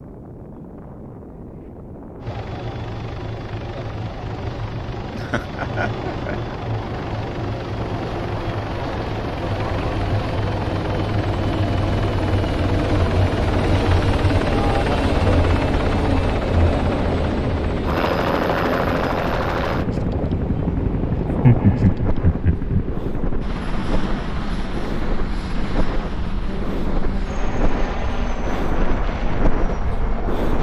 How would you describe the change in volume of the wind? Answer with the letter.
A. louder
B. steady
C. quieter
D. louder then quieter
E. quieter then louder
A.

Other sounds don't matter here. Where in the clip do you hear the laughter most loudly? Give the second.
22 s.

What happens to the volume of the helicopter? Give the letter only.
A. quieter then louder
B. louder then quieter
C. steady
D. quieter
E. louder
B.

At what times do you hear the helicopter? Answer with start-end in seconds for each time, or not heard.
2.2-30.5.